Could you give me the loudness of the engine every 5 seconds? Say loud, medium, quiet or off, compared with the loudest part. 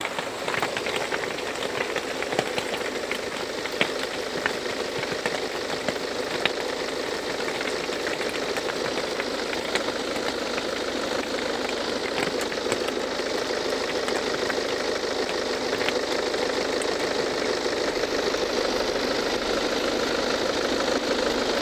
medium, medium, loud, loud, loud.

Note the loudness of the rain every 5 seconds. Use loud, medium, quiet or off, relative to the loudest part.
loud, loud, loud, medium, medium.